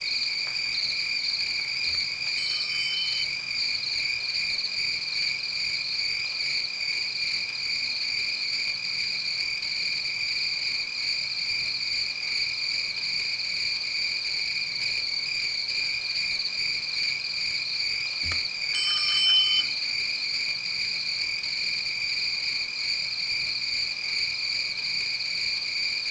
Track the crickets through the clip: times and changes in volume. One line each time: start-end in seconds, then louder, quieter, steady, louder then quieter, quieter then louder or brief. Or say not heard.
0.0-26.0 steady.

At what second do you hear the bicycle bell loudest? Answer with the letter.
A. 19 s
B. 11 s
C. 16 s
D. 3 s
A.